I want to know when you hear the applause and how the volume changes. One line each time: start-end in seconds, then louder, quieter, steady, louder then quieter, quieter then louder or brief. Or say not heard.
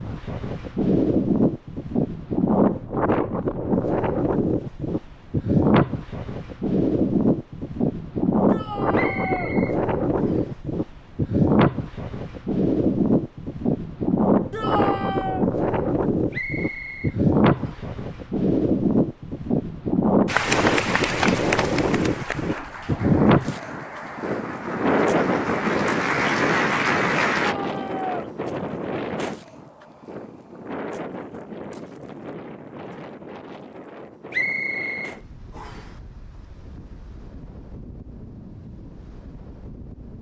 20.2-27.6 quieter then louder.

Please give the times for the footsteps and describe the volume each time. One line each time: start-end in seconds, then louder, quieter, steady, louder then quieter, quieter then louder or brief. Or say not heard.
not heard.